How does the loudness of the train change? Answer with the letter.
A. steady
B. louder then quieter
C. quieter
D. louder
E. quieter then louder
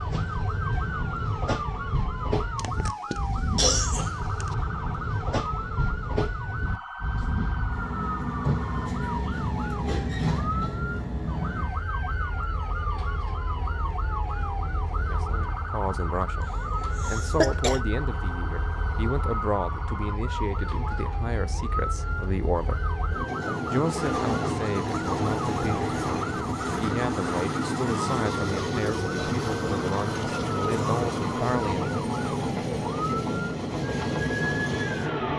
E.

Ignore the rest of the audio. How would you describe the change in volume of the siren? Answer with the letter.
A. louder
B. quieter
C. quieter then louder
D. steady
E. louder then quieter
D.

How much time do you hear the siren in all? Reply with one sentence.
You can hear the siren for 35 seconds altogether.